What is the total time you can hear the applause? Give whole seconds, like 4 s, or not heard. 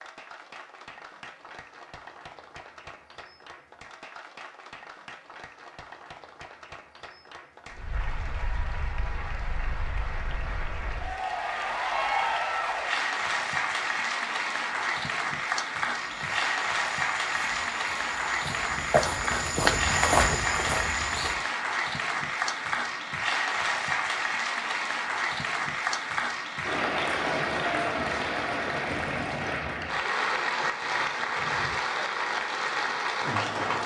34 s.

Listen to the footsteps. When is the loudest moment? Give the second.
20 s.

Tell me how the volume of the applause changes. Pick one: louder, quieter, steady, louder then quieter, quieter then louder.
louder.